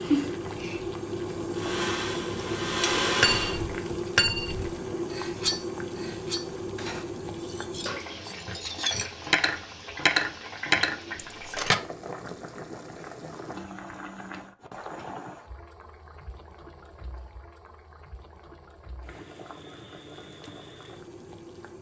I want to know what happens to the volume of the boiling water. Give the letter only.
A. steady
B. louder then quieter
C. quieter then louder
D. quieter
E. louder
D.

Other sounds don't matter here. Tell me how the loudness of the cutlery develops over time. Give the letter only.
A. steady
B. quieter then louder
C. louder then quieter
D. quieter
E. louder
B.